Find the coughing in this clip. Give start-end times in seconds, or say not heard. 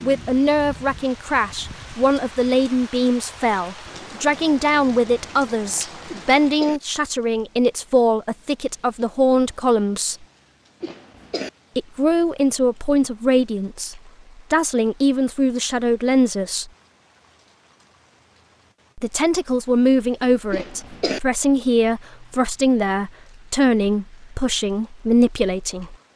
6.0-6.8, 10.8-11.5, 20.5-21.2.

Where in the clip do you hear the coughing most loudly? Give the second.
21 s.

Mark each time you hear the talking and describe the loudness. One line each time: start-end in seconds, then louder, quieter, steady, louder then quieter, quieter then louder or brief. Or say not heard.
0.0-10.2 steady
11.8-16.7 steady
18.9-25.9 steady.